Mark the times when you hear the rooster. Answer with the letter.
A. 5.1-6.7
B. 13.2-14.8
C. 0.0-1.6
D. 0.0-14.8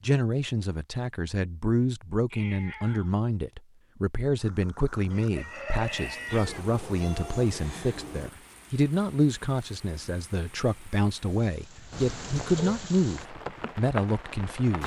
A.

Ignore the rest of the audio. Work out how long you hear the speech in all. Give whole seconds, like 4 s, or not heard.
15 s.